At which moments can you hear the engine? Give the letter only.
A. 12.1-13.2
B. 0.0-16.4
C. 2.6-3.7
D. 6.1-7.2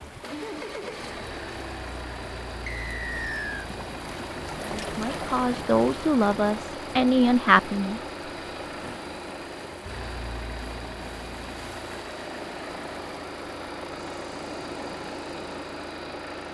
B.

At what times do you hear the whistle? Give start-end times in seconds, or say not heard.
2.6-3.7.